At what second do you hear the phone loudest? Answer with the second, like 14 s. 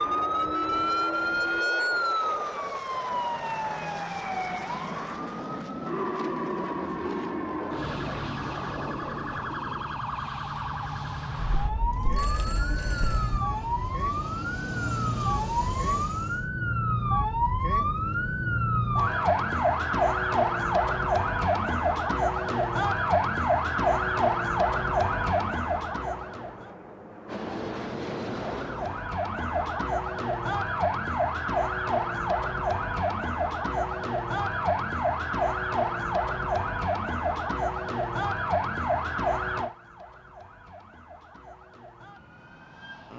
13 s.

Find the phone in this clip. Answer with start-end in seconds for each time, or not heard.
11.6-13.4.